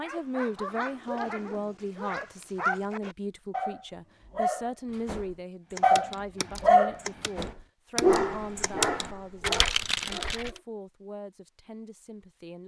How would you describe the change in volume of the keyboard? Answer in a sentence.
The loudness of the keyboard goes up.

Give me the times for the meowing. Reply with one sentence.
You can't hear the meowing here.